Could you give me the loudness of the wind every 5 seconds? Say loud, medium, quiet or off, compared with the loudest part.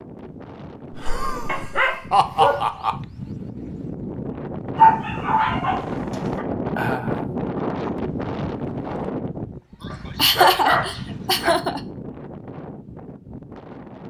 medium, loud, medium.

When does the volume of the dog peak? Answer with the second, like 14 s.
5 s.